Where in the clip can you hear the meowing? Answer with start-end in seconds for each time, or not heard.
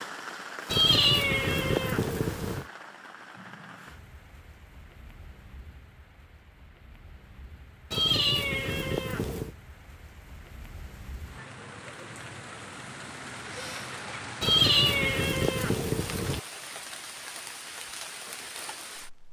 0.7-2.6, 7.9-9.5, 14.4-16.4.